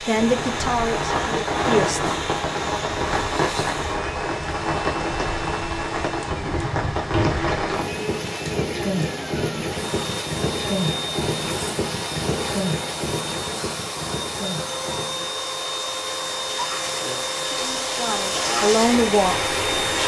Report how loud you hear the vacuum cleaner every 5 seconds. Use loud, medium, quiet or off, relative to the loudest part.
medium, medium, loud, loud.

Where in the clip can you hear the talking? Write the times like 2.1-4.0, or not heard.
0.1-2.0, 17.4-20.0.